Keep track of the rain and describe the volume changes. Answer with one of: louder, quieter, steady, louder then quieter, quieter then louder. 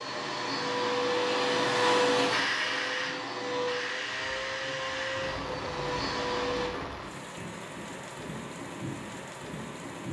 steady.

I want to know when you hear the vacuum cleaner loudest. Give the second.
2 s.